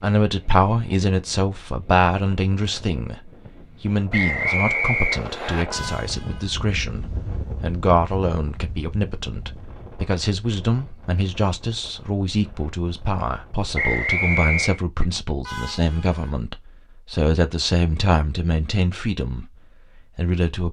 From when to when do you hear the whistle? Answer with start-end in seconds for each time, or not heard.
4.1-5.7, 13.8-14.8.